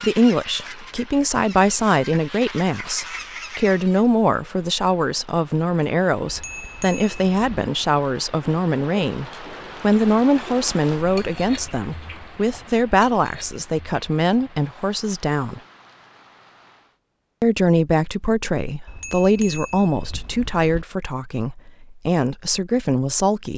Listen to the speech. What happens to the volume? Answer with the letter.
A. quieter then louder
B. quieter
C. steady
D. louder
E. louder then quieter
C.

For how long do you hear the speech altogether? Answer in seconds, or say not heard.
22 s.